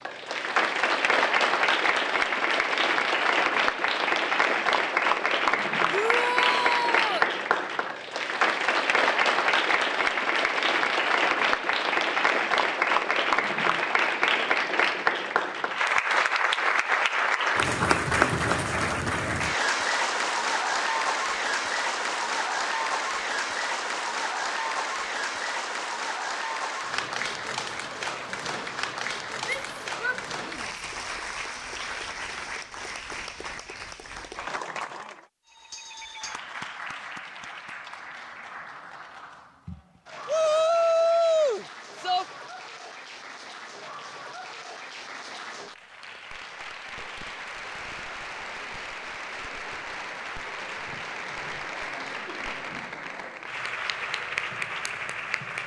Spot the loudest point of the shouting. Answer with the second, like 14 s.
41 s.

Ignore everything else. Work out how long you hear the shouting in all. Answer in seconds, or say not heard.
5 s.